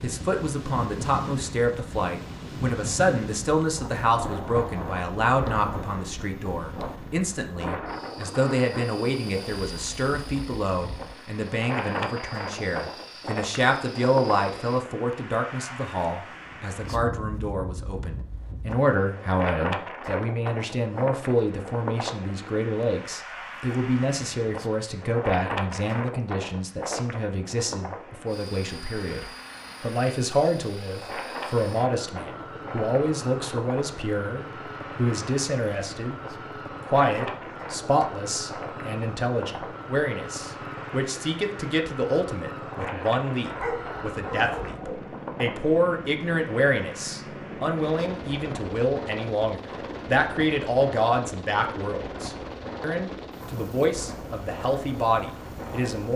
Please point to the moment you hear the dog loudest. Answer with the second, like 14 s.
44 s.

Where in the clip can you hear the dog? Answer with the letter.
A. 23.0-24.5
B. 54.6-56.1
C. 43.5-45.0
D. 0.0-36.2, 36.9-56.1
C.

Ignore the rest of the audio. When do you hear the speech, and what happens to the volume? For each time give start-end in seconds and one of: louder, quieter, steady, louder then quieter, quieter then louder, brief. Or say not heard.
0.0-36.2 steady
36.9-56.1 steady.